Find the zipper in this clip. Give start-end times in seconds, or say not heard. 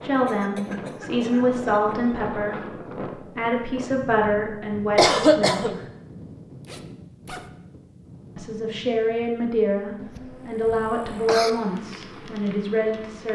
6.6-7.5.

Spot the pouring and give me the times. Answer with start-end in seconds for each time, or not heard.
not heard.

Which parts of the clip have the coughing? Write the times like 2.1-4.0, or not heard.
0.1-1.9, 5.0-5.8, 9.9-11.5.